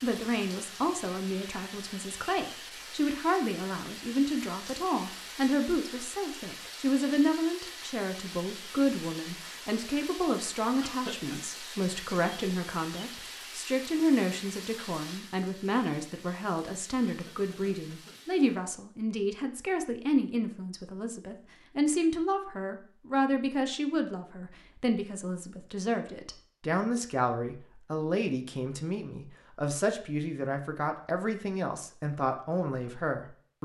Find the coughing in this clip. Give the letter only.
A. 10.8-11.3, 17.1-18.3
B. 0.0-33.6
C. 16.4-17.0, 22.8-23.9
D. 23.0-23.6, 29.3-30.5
A.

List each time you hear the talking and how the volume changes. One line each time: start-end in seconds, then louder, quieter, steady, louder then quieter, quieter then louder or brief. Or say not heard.
0.0-33.6 steady.